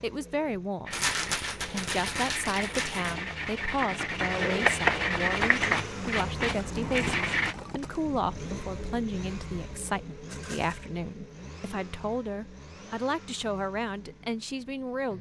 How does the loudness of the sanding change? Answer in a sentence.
The loudness of the sanding goes up, then down.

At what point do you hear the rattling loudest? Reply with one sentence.
The volume of the rattling peaks at 1 second.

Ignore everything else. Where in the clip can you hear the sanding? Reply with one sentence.
You can hear the sanding from 0.8 to 7.5 s.